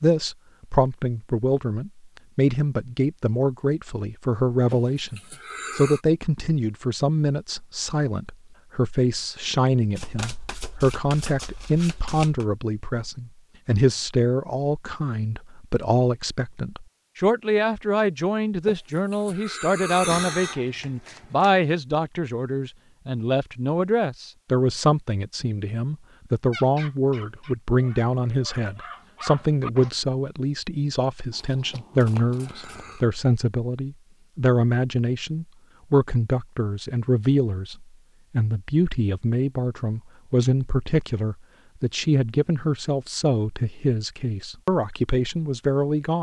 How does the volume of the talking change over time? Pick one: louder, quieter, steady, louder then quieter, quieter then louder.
steady.